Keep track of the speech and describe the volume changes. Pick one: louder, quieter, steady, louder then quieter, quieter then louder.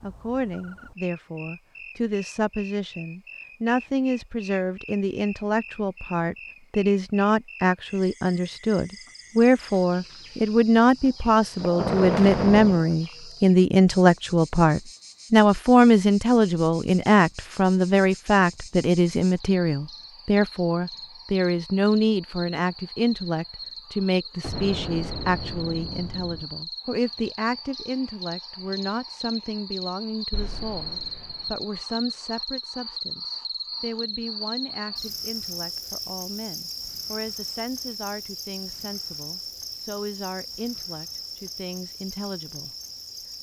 louder then quieter.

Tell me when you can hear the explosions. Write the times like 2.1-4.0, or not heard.
11.6-12.9, 24.4-26.4, 30.3-31.4.